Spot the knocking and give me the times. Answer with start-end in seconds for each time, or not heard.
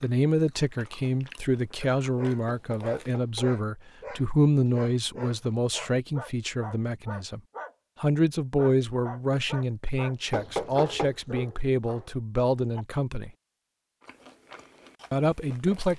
2.5-3.6, 10.3-11.2.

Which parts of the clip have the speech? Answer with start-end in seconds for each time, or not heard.
0.0-7.4, 8.0-13.3, 15.1-15.9.